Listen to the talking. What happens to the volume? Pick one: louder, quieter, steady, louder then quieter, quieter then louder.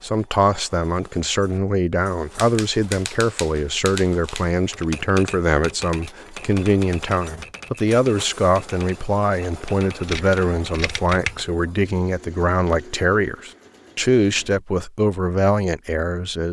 steady.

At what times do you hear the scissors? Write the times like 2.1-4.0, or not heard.
10.1-11.5.